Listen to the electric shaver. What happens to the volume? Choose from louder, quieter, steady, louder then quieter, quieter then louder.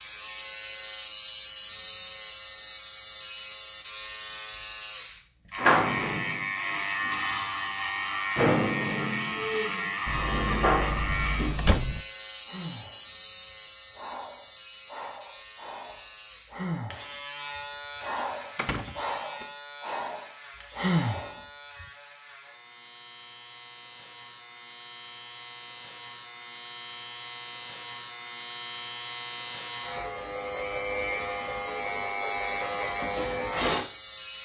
quieter then louder.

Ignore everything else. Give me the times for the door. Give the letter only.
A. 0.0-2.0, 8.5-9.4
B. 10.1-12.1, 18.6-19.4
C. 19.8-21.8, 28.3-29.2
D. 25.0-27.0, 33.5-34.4
B.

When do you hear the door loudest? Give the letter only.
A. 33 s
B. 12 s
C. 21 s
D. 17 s
B.